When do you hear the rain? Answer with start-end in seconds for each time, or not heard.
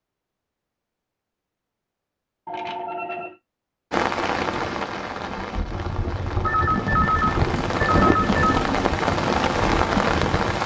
3.9-10.6.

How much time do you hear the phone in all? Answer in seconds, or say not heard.
3 s.